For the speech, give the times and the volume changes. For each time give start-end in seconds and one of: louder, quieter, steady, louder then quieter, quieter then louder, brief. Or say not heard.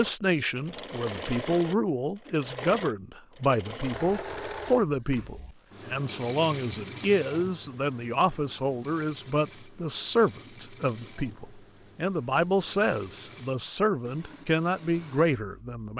0.0-15.9 steady.